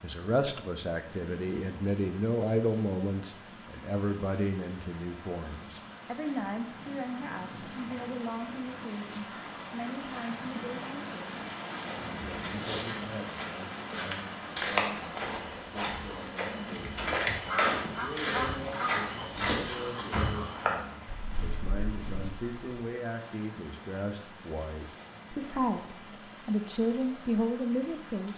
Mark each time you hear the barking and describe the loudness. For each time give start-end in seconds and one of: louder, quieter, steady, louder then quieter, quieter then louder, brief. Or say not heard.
not heard.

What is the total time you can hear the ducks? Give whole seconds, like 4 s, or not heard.
2 s.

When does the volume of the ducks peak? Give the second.
18 s.